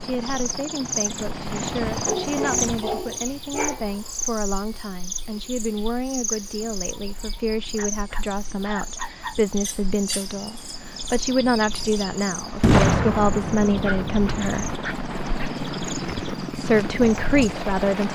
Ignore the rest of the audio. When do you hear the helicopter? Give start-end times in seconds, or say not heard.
0.0-2.9, 6.5-18.1.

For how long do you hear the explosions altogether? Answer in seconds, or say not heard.
2 s.